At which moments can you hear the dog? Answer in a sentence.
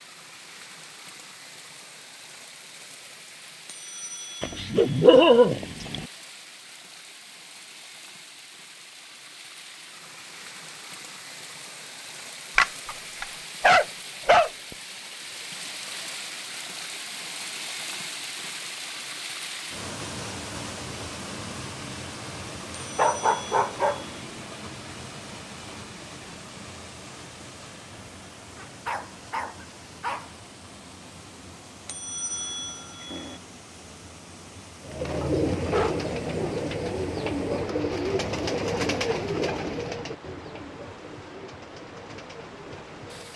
You can hear the dog from 4.4 to 6.0 s, from 12.6 to 14.5 s, from 22.9 to 24.1 s, from 28.6 to 30.3 s and from 35.2 to 36.6 s.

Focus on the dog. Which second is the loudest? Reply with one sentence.
The volume of the dog peaks at 5 seconds.